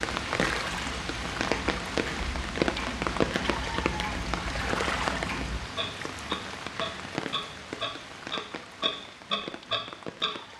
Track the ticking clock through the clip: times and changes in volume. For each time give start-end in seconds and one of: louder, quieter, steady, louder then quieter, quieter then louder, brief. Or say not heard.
0.0-10.3 louder.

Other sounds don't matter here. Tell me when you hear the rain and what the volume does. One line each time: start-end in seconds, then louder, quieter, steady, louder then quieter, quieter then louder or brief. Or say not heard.
0.0-10.5 quieter.